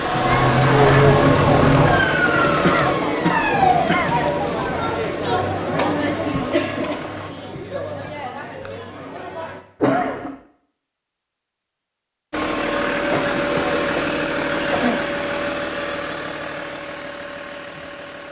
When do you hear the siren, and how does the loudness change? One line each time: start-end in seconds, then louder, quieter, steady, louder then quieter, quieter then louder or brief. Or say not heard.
0.0-4.0 quieter.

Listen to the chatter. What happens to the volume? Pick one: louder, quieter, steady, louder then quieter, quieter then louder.
quieter.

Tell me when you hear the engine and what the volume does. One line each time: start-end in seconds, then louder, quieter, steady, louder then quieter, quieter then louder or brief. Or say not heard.
0.0-7.3 quieter
12.3-18.2 quieter.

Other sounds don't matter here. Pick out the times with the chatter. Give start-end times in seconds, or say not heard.
0.0-9.7.